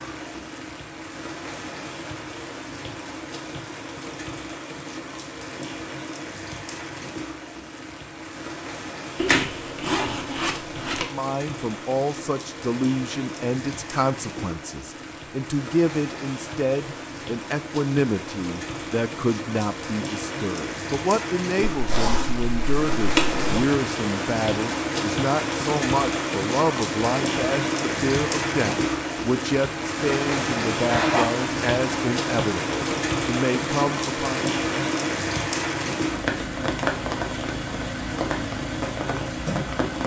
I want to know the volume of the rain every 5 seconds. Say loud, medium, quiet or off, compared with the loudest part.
medium, medium, medium, medium, loud, loud, loud, loud.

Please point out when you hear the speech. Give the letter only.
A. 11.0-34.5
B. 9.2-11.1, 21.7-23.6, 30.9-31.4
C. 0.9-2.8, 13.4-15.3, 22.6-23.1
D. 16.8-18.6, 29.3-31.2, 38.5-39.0
A.